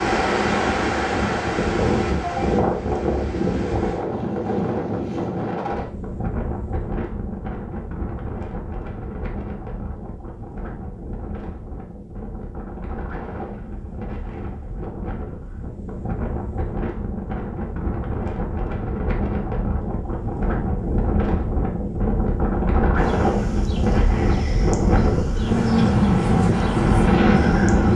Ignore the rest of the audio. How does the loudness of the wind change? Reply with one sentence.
The volume of the wind goes down, then up.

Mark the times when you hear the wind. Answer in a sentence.
The wind can be heard from 0.0 to 27.9 s.